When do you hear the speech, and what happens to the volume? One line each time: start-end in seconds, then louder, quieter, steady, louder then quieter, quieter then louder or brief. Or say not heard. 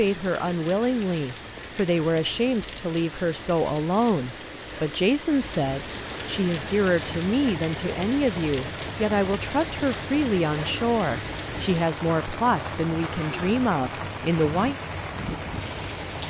0.0-14.8 steady.